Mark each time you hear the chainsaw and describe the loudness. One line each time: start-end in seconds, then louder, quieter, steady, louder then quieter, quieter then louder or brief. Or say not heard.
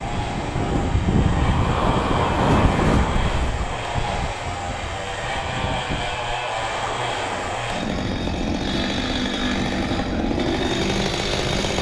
0.0-11.7 louder.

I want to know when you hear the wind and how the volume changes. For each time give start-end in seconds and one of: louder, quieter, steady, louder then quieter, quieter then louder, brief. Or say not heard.
0.0-11.7 quieter.